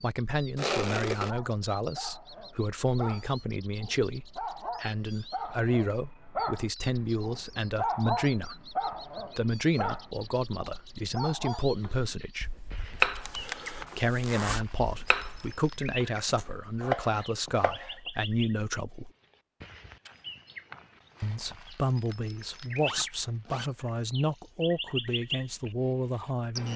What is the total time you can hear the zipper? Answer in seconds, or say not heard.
3 s.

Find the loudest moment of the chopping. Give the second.
13 s.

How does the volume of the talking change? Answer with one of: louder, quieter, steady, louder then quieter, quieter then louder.
steady.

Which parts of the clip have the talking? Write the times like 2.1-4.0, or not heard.
0.0-12.5, 13.9-19.1, 21.2-26.7.